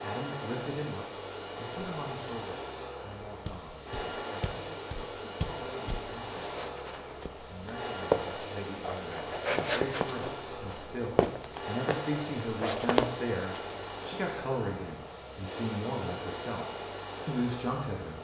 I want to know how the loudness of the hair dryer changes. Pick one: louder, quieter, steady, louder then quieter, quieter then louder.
steady.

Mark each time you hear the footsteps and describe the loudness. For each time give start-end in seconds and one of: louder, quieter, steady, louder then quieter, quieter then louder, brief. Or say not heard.
3.5-13.9 louder.